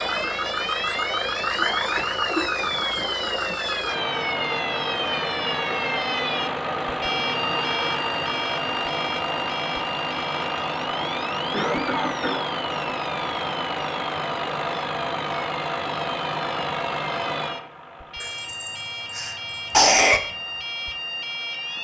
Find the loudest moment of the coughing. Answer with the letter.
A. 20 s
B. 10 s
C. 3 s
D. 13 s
A.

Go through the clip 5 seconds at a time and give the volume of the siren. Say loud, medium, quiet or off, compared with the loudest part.
loud, loud, medium, medium, loud.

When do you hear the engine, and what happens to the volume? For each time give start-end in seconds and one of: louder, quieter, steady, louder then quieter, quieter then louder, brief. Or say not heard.
0.0-21.7 quieter.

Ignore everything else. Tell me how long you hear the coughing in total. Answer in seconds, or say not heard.
4 s.